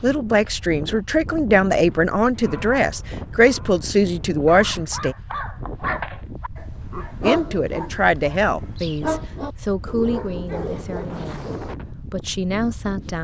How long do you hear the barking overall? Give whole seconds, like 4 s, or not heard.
10 s.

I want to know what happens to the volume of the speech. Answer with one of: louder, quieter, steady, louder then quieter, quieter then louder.
quieter.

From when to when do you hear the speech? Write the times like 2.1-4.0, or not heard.
0.0-5.2, 7.2-13.2.